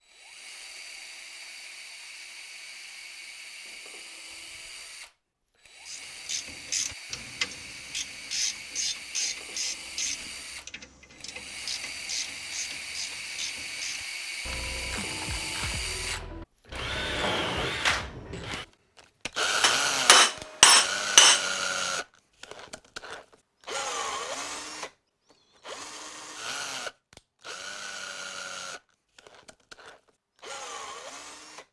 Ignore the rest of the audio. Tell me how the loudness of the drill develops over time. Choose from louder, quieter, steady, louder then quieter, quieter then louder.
louder then quieter.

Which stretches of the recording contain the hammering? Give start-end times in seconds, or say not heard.
19.6-21.4.